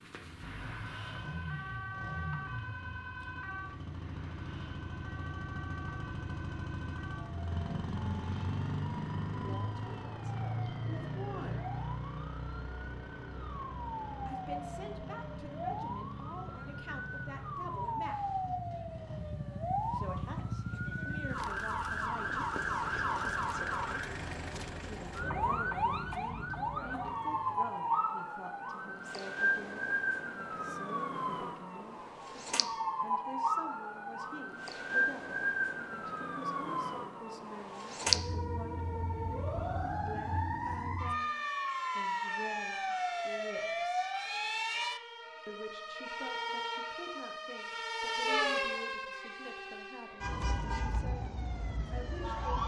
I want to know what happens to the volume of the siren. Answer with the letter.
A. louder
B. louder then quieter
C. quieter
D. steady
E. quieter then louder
A.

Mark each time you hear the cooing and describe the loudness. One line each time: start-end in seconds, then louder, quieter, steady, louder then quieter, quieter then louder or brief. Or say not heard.
not heard.